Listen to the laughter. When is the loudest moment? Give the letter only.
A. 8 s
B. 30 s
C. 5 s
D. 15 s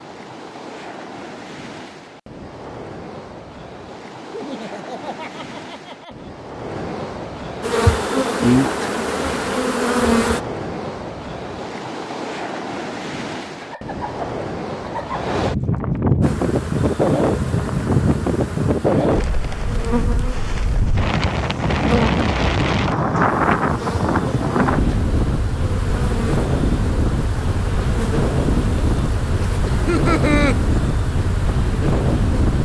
B.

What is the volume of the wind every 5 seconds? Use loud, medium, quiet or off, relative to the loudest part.
quiet, medium, medium, loud, loud, loud, loud.